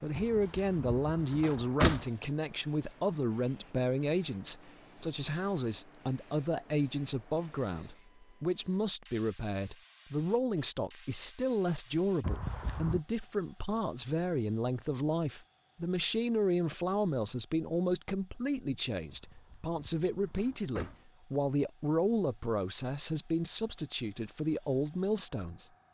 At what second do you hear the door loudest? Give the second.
2 s.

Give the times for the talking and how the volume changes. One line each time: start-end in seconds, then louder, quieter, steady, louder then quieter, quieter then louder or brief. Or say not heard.
0.0-25.6 steady.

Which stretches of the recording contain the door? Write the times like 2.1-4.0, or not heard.
0.1-2.0, 12.2-13.0, 19.1-20.9.